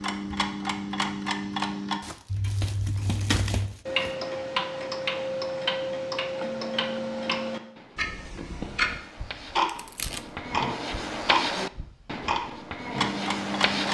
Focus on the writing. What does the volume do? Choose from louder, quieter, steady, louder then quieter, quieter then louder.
louder.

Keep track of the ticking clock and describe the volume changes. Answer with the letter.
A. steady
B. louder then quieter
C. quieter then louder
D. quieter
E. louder
A.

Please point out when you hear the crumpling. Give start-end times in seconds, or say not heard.
2.0-4.2, 9.7-10.2.